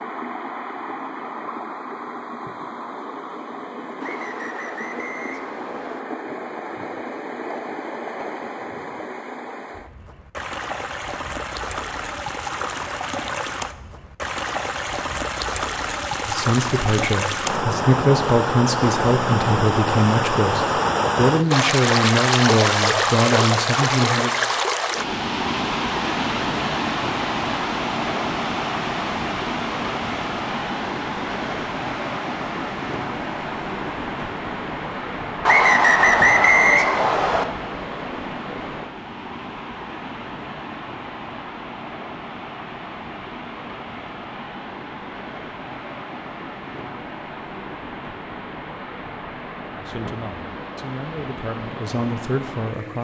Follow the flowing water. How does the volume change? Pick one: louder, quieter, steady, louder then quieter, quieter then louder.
louder then quieter.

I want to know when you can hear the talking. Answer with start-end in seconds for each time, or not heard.
16.2-24.4, 49.8-52.9.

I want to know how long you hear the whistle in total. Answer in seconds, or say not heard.
4 s.